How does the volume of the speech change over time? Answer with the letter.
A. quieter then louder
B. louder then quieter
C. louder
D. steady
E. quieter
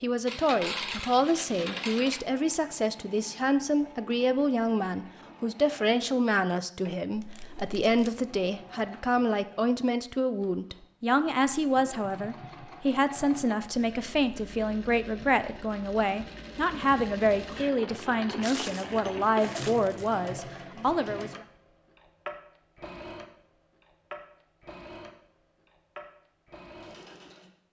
D.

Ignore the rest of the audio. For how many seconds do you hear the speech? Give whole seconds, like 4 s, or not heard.
21 s.